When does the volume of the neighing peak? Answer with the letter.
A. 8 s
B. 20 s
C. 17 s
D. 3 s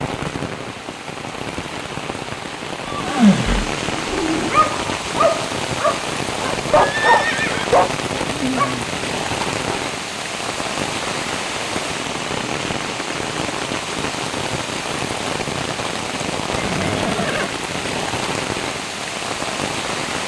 D.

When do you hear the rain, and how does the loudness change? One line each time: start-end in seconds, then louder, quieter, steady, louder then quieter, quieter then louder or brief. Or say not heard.
0.0-20.2 steady.